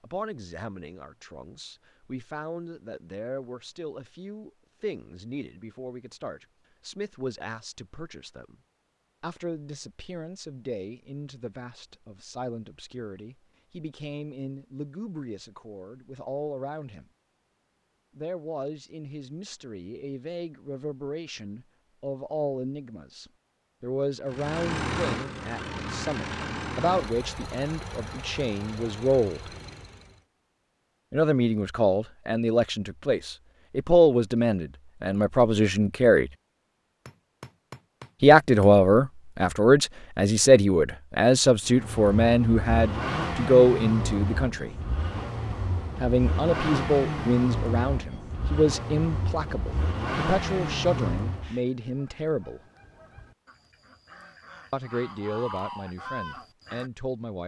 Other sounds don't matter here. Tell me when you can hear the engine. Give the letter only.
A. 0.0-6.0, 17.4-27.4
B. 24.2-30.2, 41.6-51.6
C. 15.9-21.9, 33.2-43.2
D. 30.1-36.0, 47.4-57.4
B.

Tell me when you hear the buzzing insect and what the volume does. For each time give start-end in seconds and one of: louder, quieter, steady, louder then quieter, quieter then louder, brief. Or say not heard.
not heard.